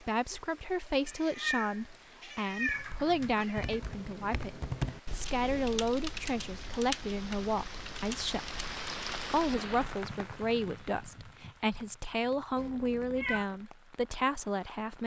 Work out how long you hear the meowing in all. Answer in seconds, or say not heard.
4 s.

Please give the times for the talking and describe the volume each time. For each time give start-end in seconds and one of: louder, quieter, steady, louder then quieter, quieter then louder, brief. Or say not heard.
0.0-15.0 steady.